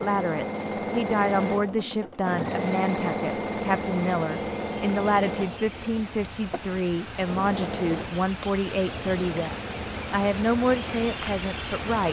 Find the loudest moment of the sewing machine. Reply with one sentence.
The loudest moment of the sewing machine is at 3 seconds.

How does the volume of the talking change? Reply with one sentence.
The volume of the talking stays about the same.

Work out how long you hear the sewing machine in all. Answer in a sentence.
You can hear the sewing machine for 12 seconds altogether.